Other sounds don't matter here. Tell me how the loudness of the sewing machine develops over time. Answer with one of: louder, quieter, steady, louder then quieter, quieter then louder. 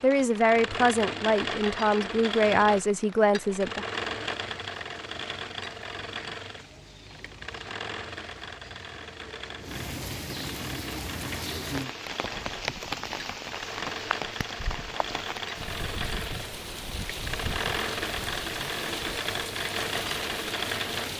quieter then louder.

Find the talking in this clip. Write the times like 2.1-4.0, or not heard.
0.0-3.9.